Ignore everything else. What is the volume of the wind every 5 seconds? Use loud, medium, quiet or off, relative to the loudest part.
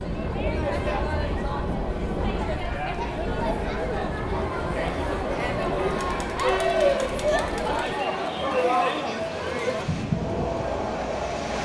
loud, medium, loud.